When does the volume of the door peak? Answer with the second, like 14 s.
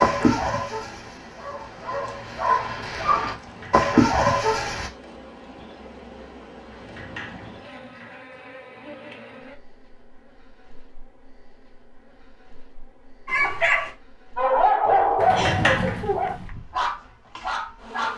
16 s.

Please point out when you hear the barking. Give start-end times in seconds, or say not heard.
0.0-4.9, 13.2-18.1.